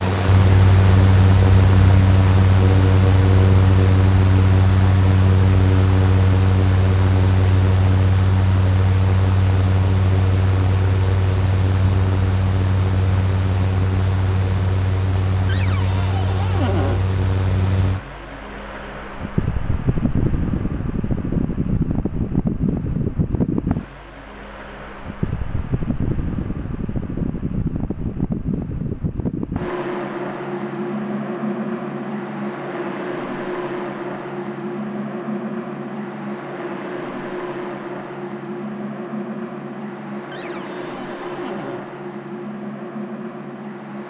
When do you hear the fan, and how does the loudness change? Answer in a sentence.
The fan can be heard from 0.0 to 44.0 s, getting quieter.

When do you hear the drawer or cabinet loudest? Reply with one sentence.
The volume of the drawer or cabinet peaks at 17 seconds.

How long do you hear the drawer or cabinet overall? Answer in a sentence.
The drawer or cabinet can be heard for 3 seconds in total.